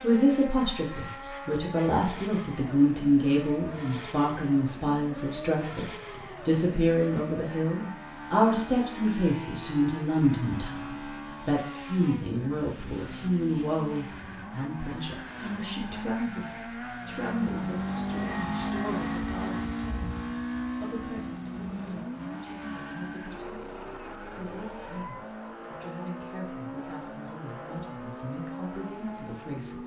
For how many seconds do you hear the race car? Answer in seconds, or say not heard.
30 s.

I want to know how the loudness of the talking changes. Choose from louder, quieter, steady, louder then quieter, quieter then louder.
quieter.